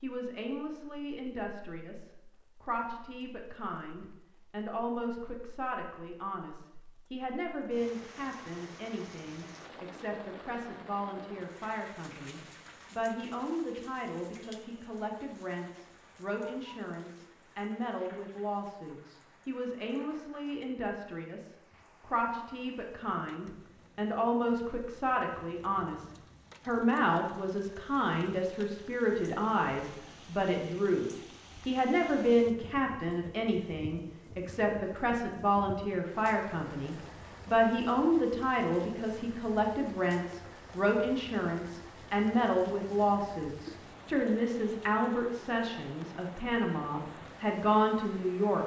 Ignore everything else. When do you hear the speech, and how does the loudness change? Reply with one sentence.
The speech can be heard from 0.0 to 48.6 s, getting louder.